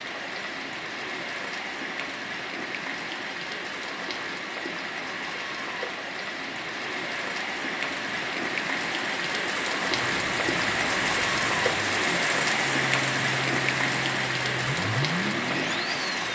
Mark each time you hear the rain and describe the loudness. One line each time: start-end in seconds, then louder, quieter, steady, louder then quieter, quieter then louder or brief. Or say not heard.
0.0-16.2 louder.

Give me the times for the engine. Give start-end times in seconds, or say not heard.
9.8-16.2.